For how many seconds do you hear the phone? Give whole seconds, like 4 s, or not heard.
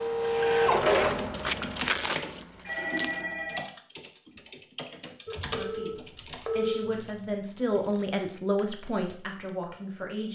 3 s.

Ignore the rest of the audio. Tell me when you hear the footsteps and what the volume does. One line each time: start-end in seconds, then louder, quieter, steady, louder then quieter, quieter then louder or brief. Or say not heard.
not heard.